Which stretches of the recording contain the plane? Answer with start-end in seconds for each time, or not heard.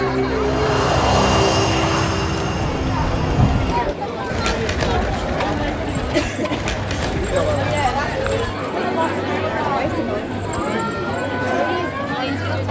0.0-3.9.